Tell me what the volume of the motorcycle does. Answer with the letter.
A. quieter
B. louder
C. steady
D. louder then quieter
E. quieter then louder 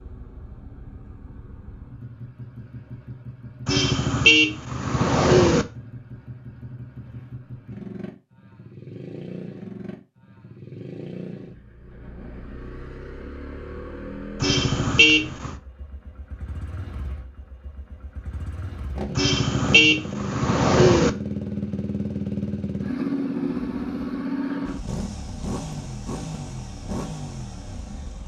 B.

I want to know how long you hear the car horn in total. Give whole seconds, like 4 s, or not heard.
5 s.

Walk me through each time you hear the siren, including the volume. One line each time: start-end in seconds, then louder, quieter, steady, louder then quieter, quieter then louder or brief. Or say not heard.
not heard.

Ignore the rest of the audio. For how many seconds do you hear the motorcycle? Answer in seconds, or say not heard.
28 s.